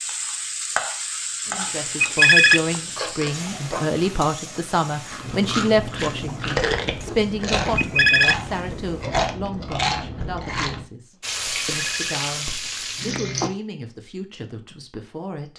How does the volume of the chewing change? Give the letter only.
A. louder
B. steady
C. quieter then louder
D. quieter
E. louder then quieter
A.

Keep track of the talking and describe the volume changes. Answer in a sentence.
The loudness of the talking goes down.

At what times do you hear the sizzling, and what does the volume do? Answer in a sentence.
You can hear the sizzling from 0.0 to 9.1 s, getting quieter; and briefly from 11.2 to 13.5 s.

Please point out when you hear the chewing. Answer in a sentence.
The chewing can be heard from 1.4 to 10.8 s.